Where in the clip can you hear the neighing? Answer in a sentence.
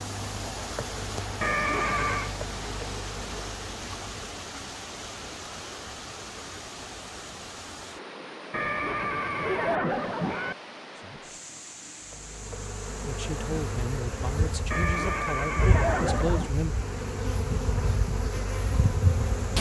You can hear the neighing from 1.4 to 2.4 s, from 8.5 to 10.6 s and from 14.7 to 16.6 s.